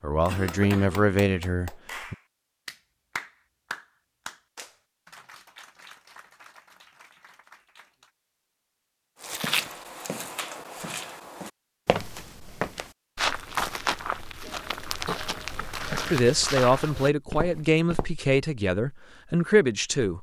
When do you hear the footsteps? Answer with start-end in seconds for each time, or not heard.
9.2-18.1.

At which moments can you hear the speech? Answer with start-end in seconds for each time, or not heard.
0.0-2.1, 16.1-20.1.